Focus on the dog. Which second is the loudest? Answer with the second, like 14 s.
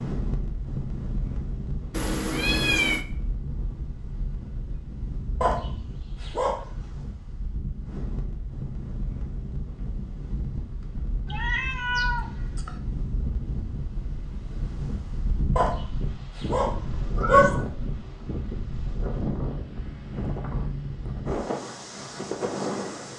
17 s.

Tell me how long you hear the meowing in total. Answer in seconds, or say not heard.
4 s.